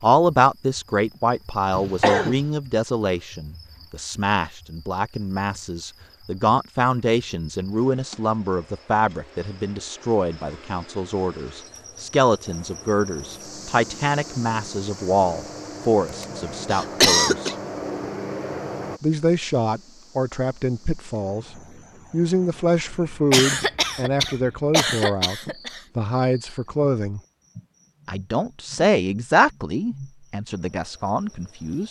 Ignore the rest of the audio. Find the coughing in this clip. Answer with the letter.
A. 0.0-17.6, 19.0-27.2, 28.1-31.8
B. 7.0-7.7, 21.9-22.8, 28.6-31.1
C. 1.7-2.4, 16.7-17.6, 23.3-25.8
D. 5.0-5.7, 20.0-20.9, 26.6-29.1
C.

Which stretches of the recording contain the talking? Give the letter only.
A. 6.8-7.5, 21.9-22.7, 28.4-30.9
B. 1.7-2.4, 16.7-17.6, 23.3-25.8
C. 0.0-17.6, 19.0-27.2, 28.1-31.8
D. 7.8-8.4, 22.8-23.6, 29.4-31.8
C.